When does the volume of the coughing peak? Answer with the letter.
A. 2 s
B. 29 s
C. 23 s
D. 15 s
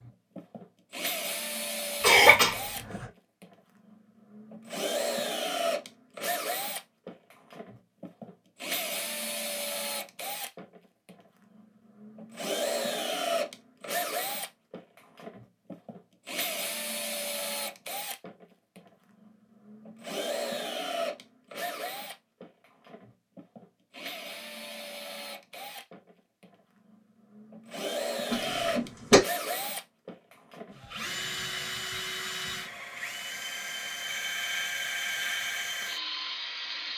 A.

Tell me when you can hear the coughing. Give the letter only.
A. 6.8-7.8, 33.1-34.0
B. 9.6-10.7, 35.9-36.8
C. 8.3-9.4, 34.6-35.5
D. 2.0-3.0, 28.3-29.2
D.